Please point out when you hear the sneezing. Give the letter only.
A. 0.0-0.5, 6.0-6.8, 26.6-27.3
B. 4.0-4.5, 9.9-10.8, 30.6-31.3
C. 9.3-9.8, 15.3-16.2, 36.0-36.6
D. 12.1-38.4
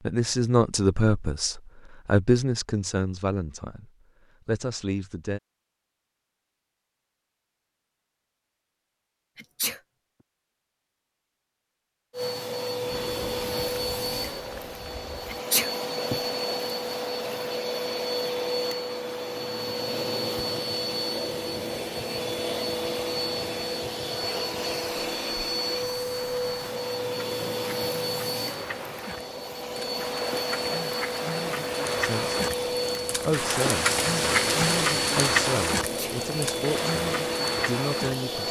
C.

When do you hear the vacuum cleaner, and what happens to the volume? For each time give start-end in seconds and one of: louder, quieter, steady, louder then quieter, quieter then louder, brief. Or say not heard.
12.1-38.4 steady.